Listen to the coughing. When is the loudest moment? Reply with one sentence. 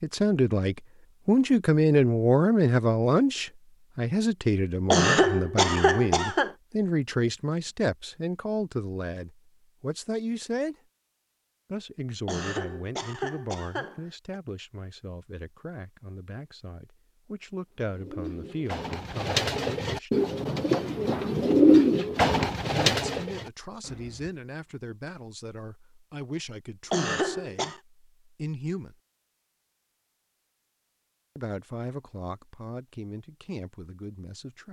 The volume of the coughing peaks at 5 seconds.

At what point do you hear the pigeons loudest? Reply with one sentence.
The loudest moment of the pigeons is at 22 seconds.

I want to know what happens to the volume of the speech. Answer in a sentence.
The loudness of the speech goes down.